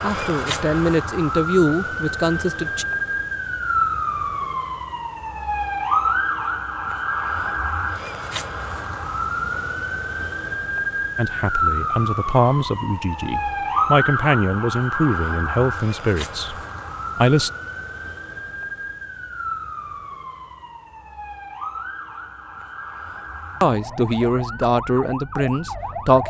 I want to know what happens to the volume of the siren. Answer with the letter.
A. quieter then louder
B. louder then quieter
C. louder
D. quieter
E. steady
D.